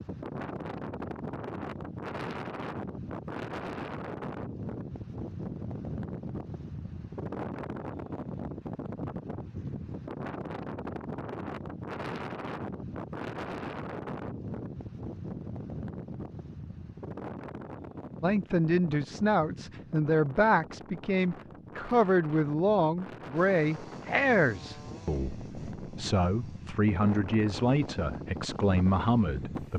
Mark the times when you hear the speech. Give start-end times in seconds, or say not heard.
18.2-29.7.